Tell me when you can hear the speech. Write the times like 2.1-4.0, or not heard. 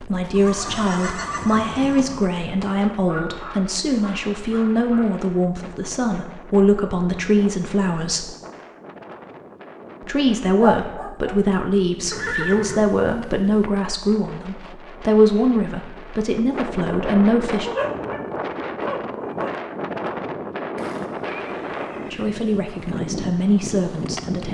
0.0-8.3, 10.0-17.7, 22.1-24.4.